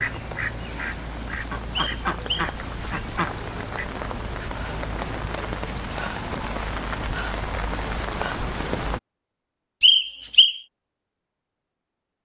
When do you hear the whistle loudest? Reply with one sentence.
The volume of the whistle peaks at 10 seconds.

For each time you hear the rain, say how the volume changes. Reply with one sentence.
The rain can be heard from 0.0 to 9.0 s, getting louder.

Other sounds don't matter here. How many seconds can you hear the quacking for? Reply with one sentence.
You can hear the quacking for 4 seconds altogether.